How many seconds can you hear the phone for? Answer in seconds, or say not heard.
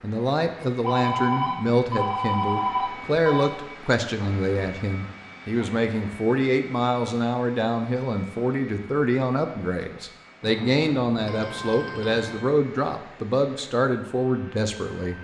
5 s.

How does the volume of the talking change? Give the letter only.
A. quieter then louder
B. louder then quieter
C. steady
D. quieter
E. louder
C.